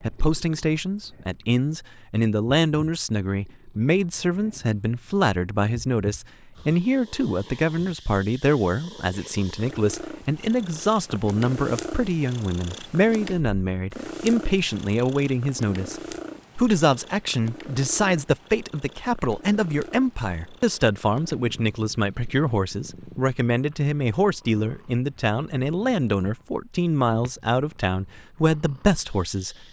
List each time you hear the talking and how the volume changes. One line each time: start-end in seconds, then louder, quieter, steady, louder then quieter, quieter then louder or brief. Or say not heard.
0.0-29.6 steady.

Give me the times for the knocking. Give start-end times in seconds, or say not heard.
not heard.